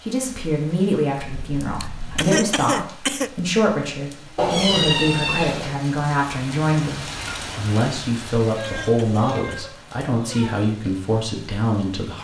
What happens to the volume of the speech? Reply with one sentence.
The volume of the speech stays about the same.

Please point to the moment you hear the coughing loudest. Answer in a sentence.
The loudest moment of the coughing is at 2 seconds.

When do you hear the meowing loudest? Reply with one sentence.
The volume of the meowing peaks at 5 seconds.